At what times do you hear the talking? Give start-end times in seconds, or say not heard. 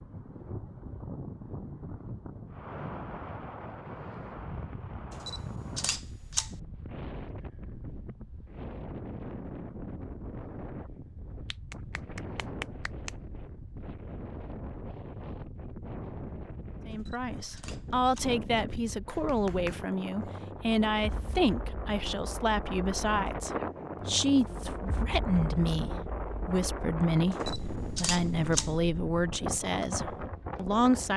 16.9-31.1.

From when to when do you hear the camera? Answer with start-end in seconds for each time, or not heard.
5.1-6.5, 16.9-18.3, 27.3-28.7.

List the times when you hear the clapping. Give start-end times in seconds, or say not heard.
11.5-13.1, 18.9-20.4.